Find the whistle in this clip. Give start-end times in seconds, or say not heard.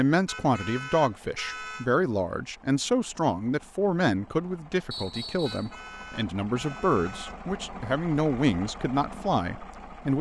4.9-5.8.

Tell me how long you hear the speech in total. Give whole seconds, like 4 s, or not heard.
10 s.